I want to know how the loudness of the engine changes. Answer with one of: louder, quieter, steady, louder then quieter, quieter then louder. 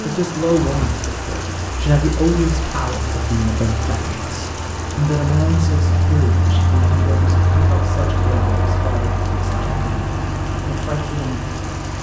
louder.